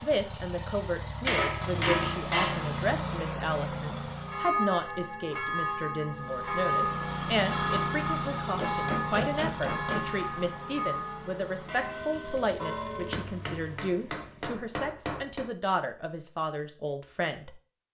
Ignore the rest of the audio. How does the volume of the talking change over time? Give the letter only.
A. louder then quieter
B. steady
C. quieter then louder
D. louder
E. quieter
B.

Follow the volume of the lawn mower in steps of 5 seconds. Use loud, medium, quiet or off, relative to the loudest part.
loud, loud, medium, off.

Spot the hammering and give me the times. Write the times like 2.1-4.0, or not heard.
1.2-2.7, 8.6-10.2, 13.1-15.5.